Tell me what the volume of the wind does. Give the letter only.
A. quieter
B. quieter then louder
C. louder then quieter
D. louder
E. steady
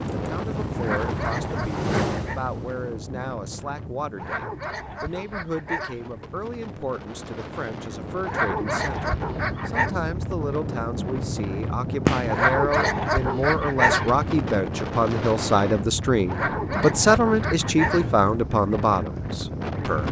B.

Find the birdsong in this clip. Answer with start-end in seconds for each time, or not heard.
not heard.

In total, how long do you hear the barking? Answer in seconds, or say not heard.
9 s.